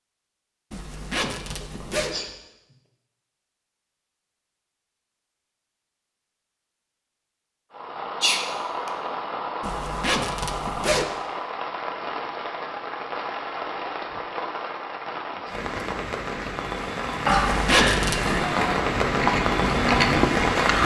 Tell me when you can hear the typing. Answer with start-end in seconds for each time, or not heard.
not heard.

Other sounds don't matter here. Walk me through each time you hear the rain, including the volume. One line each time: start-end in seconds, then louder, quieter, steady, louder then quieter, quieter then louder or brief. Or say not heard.
7.7-20.8 louder.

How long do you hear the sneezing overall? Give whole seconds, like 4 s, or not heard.
2 s.